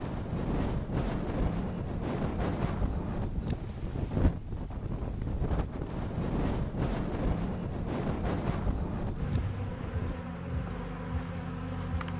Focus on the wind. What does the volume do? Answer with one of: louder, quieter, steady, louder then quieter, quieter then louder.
steady.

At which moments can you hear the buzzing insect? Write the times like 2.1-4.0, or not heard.
9.1-12.1.